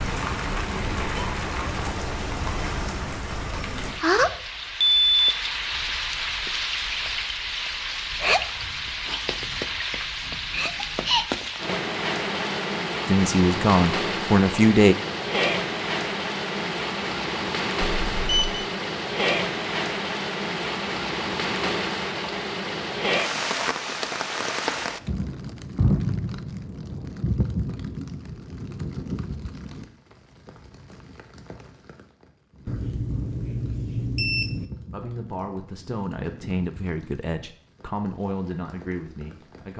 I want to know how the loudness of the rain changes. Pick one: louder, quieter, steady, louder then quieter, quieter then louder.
quieter.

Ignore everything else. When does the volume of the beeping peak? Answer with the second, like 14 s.
5 s.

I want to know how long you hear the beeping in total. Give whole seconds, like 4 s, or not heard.
3 s.